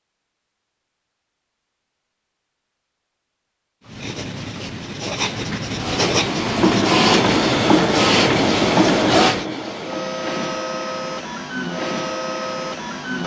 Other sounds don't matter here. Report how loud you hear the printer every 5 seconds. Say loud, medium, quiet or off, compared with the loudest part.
off, loud, medium.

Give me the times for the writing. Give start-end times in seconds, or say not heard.
3.9-9.4.